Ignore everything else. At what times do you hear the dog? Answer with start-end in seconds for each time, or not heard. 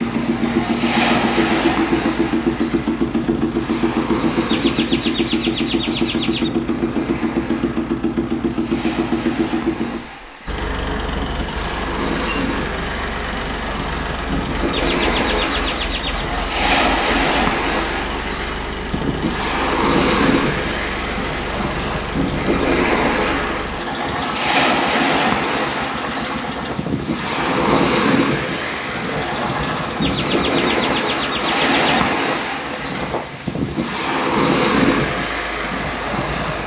not heard.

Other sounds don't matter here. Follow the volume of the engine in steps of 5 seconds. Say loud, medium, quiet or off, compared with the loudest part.
loud, loud, medium, medium, medium, medium, medium, medium.